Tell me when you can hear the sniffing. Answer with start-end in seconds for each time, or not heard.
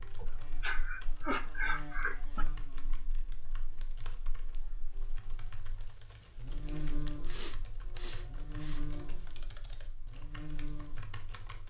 0.2-2.5, 7.0-8.8.